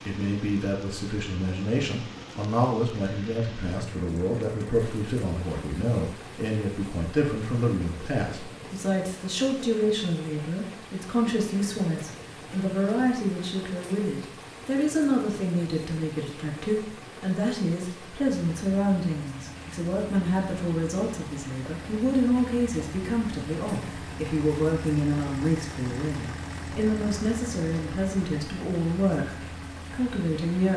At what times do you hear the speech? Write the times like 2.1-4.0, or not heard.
0.1-30.7.